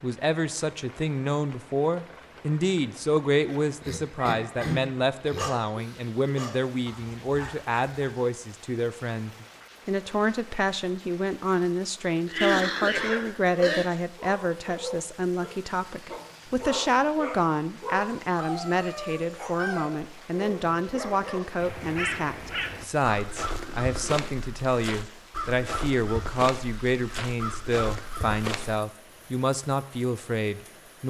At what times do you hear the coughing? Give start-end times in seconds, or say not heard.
3.8-5.5, 12.2-13.8, 23.5-24.2.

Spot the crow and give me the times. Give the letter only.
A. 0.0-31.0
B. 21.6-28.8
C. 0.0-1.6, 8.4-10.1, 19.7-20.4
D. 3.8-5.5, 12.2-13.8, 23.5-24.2
B.